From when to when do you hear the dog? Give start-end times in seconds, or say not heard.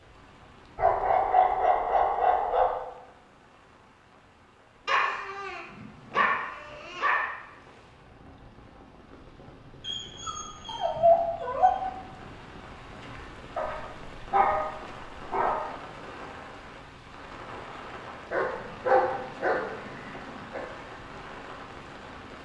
0.8-2.8, 4.8-7.2, 9.8-11.8, 13.6-15.6, 18.3-20.6.